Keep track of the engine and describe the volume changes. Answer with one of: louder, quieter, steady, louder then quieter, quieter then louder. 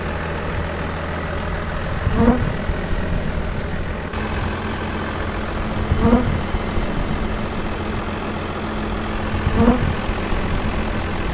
steady.